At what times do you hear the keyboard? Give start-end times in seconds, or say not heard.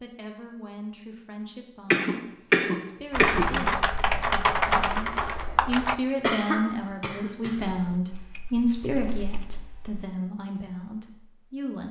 3.1-6.0, 7.8-10.1.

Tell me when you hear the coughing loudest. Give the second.
3 s.